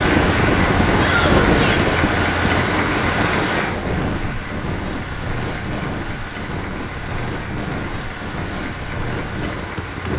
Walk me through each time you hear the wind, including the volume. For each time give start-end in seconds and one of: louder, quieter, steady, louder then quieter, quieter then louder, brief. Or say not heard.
0.0-10.1 quieter.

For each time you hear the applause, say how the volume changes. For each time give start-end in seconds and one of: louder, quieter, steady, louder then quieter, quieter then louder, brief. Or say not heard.
0.0-10.1 quieter.